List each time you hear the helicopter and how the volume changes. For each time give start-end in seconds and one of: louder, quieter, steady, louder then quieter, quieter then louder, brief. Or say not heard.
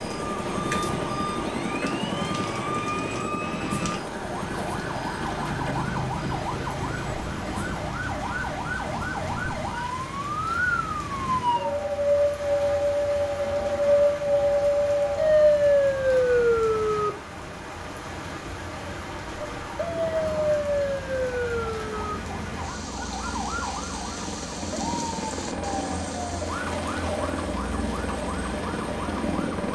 0.0-29.6 quieter then louder.